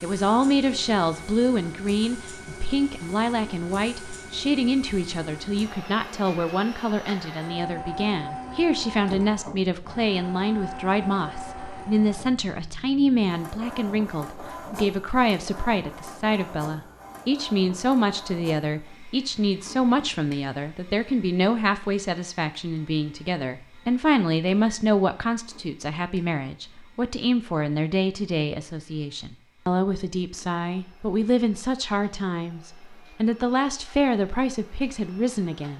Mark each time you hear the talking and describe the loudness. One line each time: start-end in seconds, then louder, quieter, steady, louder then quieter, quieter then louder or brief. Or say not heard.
0.0-35.7 steady.